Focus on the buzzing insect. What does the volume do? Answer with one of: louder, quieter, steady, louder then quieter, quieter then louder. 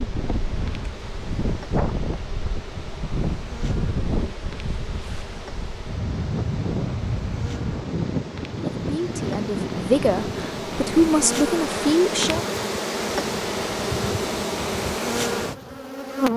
louder.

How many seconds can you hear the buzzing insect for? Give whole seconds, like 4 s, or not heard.
16 s.